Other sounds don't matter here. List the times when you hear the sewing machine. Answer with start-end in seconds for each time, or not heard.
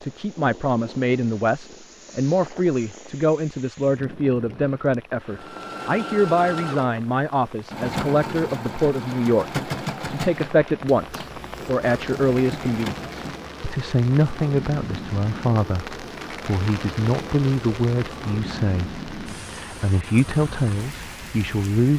5.3-13.5.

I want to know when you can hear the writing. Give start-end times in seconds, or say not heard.
not heard.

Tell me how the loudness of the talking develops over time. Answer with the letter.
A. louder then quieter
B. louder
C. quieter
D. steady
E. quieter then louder
D.